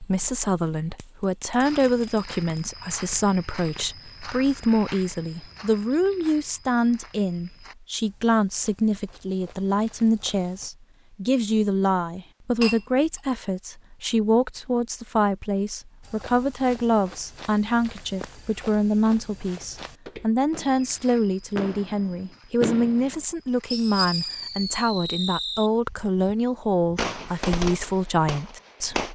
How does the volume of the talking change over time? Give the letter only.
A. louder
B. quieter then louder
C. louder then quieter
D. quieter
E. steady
E.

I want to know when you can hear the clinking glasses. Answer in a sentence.
The clinking glasses can be heard from 12.6 to 13.2 s.